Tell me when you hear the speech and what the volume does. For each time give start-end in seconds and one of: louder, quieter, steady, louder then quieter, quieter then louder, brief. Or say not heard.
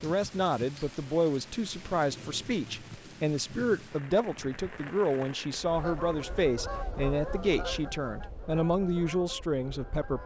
0.0-10.2 steady.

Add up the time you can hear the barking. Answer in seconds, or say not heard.
not heard.